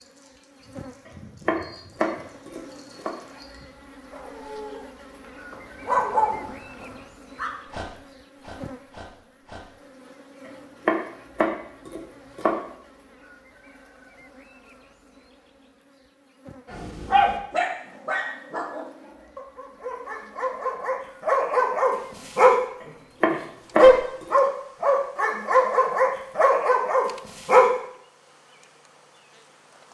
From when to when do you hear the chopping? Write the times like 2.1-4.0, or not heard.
1.1-3.1, 10.4-12.6, 22.8-24.4.